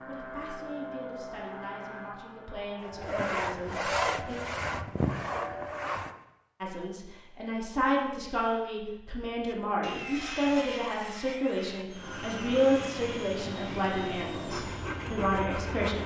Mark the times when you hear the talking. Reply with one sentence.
You can hear the talking from 0.1 to 4.3 s and from 6.6 to 16.0 s.